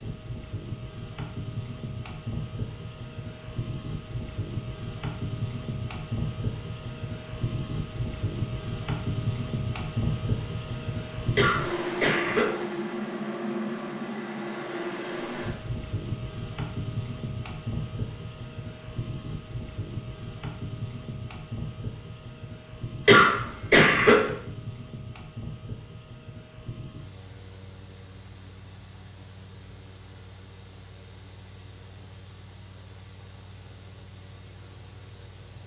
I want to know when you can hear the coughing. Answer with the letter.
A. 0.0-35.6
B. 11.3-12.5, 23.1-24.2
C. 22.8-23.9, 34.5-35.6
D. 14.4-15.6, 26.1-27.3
B.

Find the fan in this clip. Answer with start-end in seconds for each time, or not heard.
0.0-35.6.